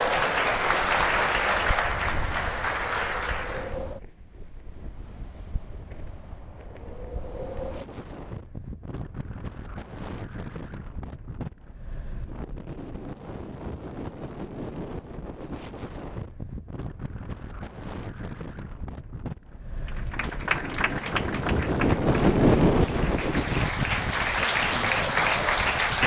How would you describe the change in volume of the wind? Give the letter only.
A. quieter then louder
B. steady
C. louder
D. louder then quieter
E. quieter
C.